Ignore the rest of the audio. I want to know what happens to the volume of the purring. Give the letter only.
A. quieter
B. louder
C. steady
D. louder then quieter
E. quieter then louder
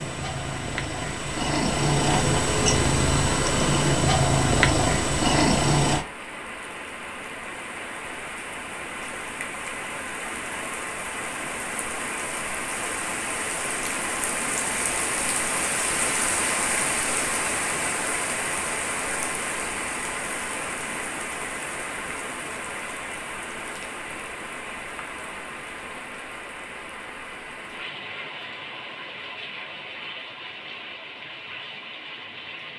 B.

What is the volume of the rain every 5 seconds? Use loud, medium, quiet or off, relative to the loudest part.
medium, medium, loud, loud, medium, medium, medium.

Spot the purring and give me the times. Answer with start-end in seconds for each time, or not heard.
0.0-6.0.